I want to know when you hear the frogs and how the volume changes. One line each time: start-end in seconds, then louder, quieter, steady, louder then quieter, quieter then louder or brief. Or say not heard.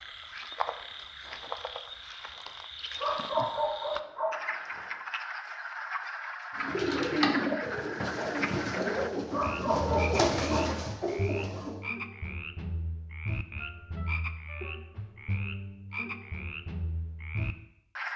0.0-18.1 steady.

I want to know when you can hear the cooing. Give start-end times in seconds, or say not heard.
6.5-11.8.